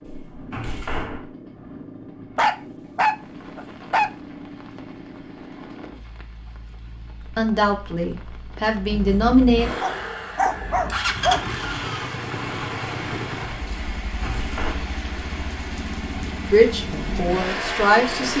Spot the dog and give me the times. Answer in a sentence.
The dog can be heard from 2.4 to 4.1 s and from 9.8 to 11.4 s.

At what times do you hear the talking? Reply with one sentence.
You can hear the talking from 7.3 to 9.7 s and from 16.5 to 18.3 s.